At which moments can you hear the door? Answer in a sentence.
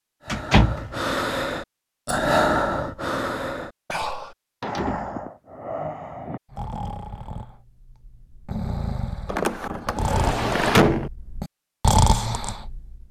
The door can be heard from 0.2 to 1.1 s, from 4.6 to 5.2 s and from 9.2 to 11.1 s.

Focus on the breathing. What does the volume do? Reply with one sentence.
The loudness of the breathing goes down, then up.